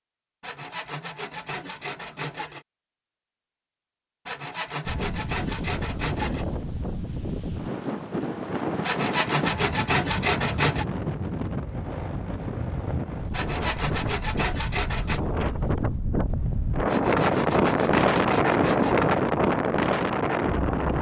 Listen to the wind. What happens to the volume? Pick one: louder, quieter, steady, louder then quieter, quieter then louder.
louder.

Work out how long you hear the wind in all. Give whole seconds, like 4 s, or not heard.
16 s.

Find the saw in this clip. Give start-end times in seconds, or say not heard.
0.4-2.6, 4.2-6.5, 8.8-10.8, 13.3-15.2, 16.9-19.1.